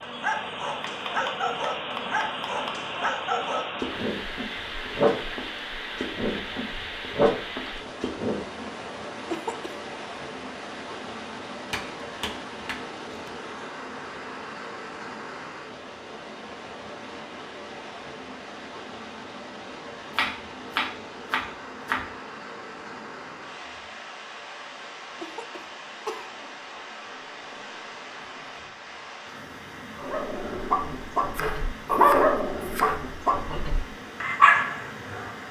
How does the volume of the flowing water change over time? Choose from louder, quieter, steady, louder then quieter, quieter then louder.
quieter.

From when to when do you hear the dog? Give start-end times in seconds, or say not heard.
0.0-8.7, 30.0-35.4.